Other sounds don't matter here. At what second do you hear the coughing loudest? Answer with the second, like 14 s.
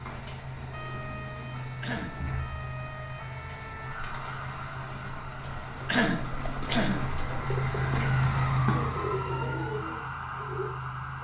6 s.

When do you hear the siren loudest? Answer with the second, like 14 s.
9 s.